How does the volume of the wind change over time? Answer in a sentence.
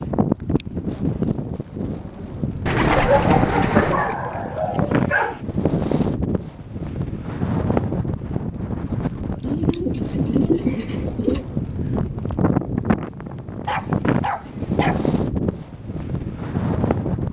The volume of the wind stays about the same.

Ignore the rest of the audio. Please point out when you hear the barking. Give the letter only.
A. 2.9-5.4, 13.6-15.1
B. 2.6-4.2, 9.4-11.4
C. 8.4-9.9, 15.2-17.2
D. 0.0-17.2
A.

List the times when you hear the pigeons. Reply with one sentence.
The pigeons can be heard from 2.6 to 4.2 s and from 9.4 to 11.4 s.